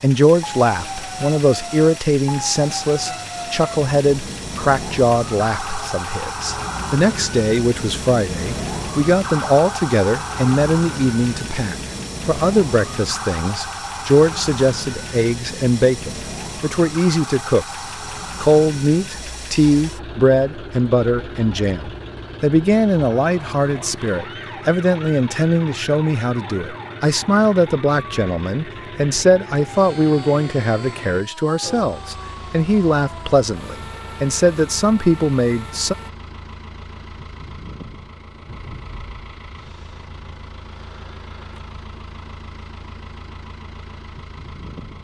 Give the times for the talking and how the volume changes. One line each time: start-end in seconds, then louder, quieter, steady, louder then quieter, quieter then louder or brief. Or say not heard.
0.0-17.6 steady
18.4-36.0 steady.